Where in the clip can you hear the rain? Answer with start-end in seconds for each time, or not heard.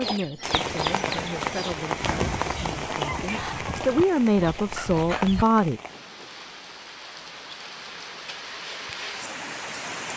0.0-10.1.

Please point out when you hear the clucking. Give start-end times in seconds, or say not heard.
0.0-5.5.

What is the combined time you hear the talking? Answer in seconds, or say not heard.
6 s.